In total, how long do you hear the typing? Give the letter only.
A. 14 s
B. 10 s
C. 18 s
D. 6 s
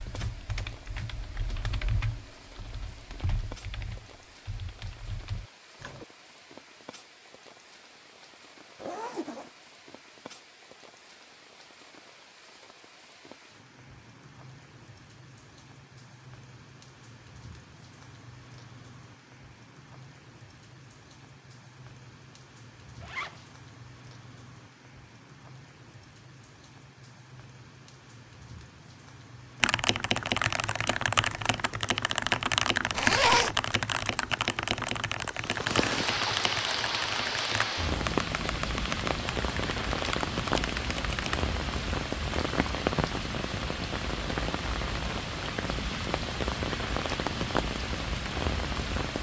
C.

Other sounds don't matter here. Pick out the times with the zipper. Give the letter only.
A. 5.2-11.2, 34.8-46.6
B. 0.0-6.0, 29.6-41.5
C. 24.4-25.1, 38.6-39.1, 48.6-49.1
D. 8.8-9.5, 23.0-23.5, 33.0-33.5
D.